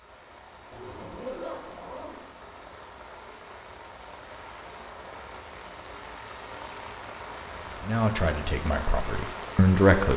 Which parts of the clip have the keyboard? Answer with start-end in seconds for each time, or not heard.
not heard.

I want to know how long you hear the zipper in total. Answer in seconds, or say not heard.
2 s.